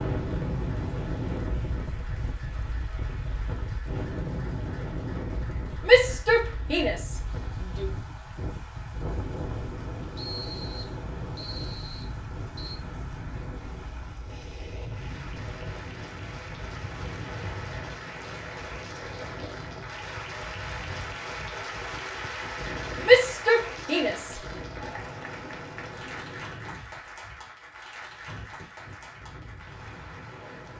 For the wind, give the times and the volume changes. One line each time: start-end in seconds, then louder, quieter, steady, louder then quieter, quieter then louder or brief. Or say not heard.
0.0-30.7 quieter.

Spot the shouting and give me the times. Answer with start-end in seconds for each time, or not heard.
5.8-7.9, 23.0-24.4.